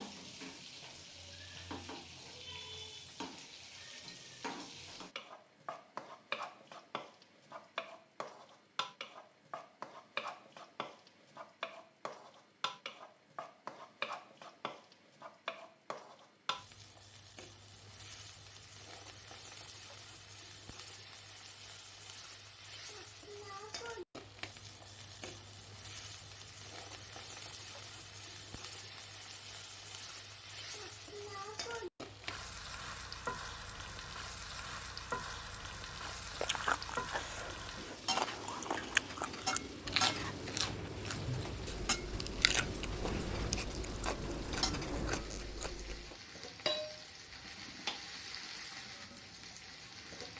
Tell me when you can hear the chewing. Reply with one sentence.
You can hear the chewing from 36.0 to 46.1 s.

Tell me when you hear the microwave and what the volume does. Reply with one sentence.
You can't hear the microwave here.